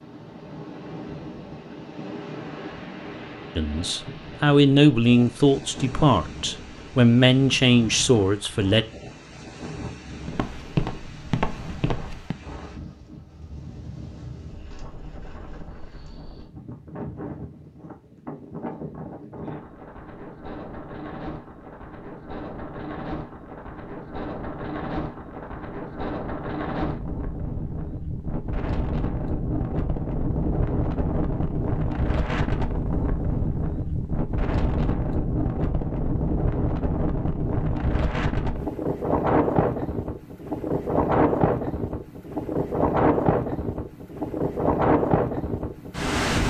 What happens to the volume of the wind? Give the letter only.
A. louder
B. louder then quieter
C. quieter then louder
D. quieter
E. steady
A.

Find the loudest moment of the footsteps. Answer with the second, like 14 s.
11 s.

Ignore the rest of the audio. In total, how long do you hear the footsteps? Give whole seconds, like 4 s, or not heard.
2 s.